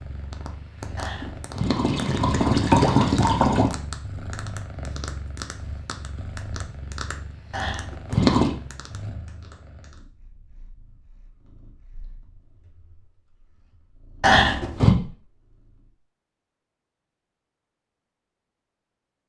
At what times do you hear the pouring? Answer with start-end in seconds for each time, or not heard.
0.9-3.7, 7.5-8.6, 14.2-14.9.